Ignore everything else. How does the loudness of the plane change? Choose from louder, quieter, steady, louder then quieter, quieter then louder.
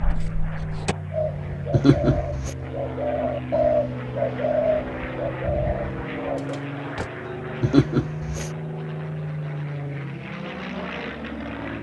steady.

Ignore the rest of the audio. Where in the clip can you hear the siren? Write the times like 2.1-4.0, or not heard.
not heard.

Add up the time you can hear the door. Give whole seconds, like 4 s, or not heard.
2 s.